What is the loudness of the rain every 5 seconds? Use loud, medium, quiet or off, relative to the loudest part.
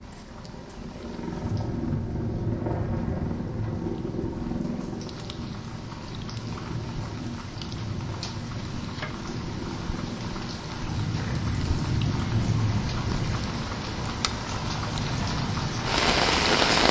quiet, quiet, medium, loud.